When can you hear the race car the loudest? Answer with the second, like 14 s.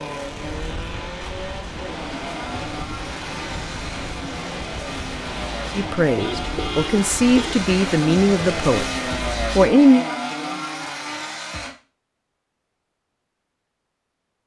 9 s.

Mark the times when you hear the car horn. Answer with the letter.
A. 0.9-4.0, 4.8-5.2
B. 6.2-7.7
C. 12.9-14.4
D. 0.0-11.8
B.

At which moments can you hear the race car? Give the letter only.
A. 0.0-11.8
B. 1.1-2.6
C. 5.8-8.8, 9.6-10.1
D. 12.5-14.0
A.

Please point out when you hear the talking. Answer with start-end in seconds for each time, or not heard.
5.8-8.8, 9.6-10.1.